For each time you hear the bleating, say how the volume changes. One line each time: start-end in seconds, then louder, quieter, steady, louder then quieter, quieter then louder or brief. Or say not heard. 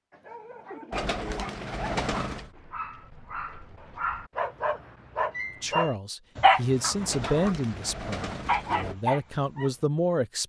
not heard.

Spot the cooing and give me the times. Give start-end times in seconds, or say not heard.
0.9-2.5, 7.0-8.9.